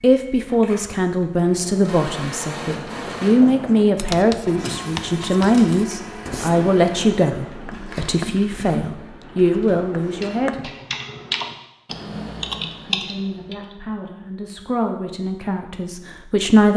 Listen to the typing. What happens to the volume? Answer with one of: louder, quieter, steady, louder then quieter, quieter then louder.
quieter then louder.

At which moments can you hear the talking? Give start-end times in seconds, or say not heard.
0.0-10.7, 12.8-16.7.